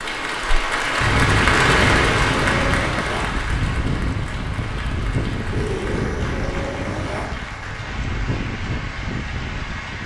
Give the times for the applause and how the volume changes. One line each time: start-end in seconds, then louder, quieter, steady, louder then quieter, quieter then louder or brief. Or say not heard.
0.0-10.0 quieter.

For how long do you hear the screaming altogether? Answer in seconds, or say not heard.
4 s.